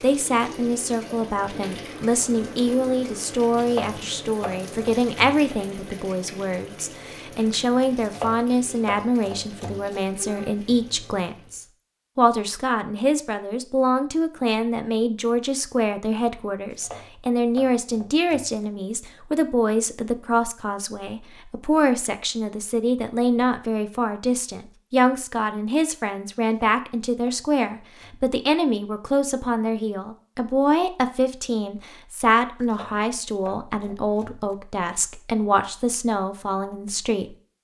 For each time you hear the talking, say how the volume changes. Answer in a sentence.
The talking can be heard from 0.0 to 37.4 s, at a steady volume.